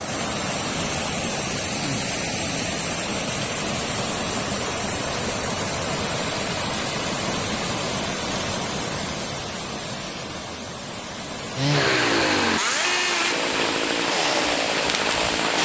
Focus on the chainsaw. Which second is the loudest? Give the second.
12 s.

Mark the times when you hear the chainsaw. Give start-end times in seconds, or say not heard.
11.6-15.5.